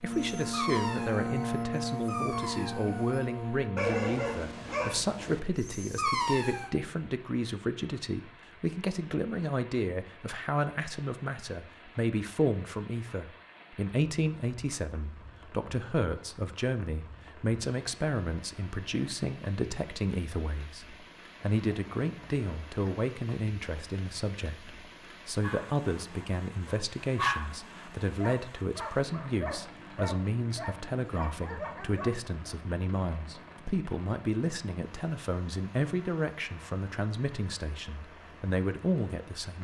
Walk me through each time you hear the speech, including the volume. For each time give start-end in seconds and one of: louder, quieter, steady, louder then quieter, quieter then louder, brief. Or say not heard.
0.0-39.5 steady.